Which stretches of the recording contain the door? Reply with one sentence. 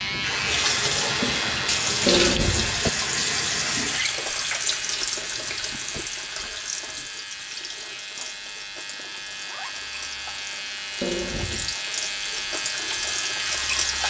You can hear the door from 2.0 to 2.9 s, from 5.2 to 6.0 s and from 11.0 to 11.8 s.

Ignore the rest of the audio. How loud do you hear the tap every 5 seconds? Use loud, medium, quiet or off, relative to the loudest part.
loud, medium, medium.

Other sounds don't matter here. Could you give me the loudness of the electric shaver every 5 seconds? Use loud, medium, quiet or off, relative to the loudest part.
loud, medium, loud.